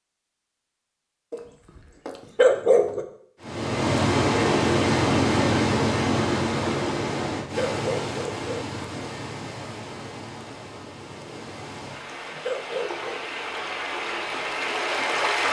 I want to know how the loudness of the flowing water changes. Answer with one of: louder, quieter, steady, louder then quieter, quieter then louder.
quieter then louder.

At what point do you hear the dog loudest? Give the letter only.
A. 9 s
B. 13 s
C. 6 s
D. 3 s
D.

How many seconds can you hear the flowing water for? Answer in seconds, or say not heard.
12 s.